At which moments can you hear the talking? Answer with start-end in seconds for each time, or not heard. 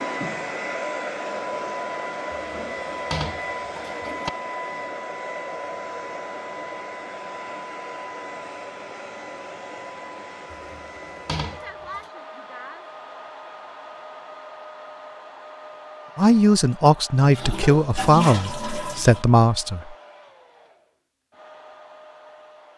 16.1-19.9.